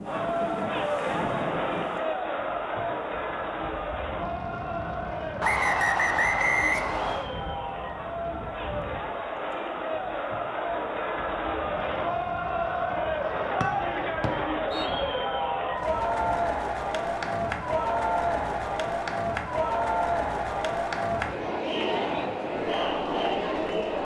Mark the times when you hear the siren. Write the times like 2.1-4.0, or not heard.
not heard.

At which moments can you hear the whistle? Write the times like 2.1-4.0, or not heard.
5.4-7.2, 13.6-14.8.